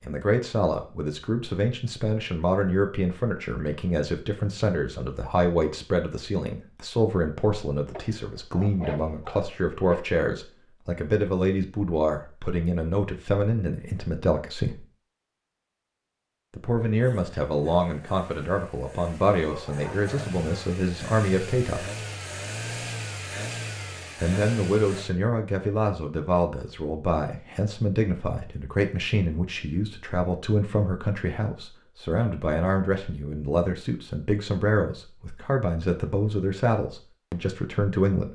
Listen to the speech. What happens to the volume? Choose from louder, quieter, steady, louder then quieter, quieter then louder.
steady.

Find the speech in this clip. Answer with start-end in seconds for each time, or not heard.
0.0-14.8, 16.5-21.9, 24.1-38.2.